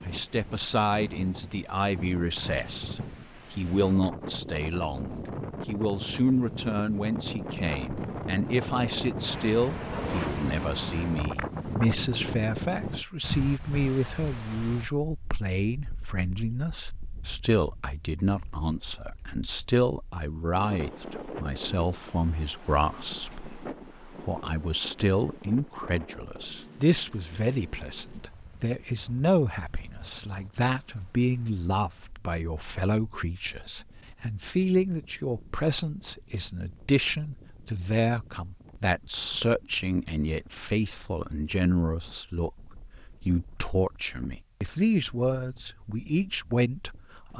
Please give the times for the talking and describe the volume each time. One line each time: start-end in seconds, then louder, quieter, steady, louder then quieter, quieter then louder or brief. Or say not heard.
0.1-47.3 steady.